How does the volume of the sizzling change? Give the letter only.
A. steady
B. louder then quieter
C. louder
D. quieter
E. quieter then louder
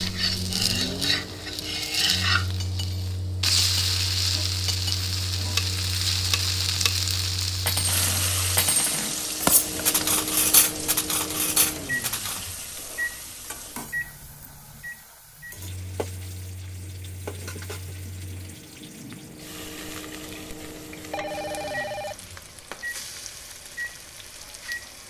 D.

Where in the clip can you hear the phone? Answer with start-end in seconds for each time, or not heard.
21.1-22.2.